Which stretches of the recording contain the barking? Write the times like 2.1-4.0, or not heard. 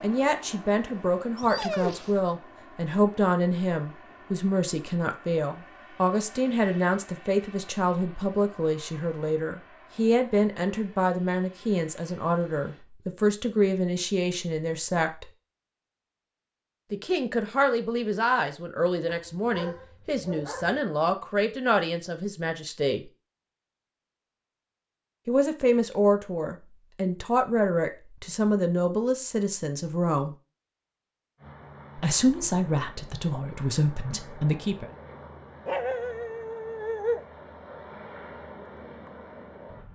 1.4-2.2, 19.1-20.8, 35.6-37.2.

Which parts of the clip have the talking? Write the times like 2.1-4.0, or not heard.
0.0-15.2, 16.9-23.1, 25.2-30.4, 31.9-34.9.